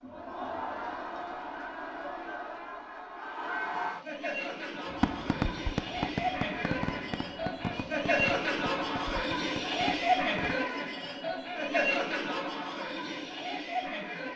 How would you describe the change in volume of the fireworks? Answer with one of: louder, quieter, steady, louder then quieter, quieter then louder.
quieter.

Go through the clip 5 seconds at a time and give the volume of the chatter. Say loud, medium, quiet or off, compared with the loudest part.
medium, loud, loud.